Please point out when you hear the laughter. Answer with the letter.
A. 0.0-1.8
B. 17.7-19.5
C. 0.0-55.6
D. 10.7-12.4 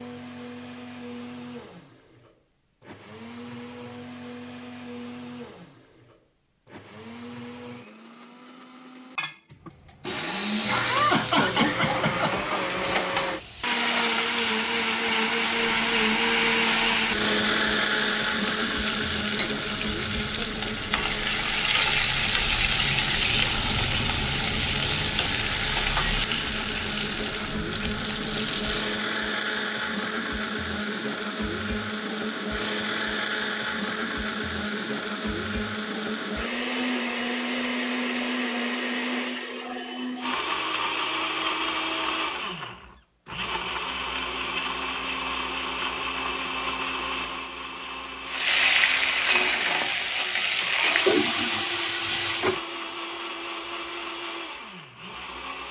D.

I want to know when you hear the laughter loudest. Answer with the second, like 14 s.
11 s.